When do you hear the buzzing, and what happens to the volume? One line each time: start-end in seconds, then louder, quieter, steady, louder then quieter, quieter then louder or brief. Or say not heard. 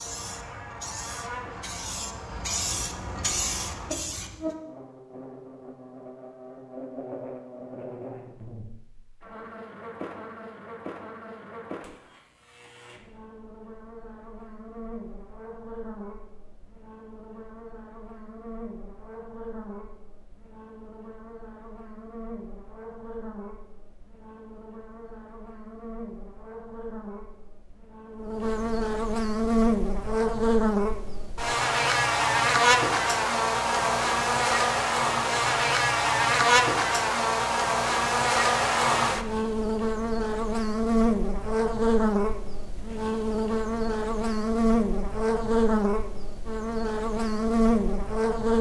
0.0-48.5 louder.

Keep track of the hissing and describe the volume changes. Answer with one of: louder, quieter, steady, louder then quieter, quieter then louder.
louder.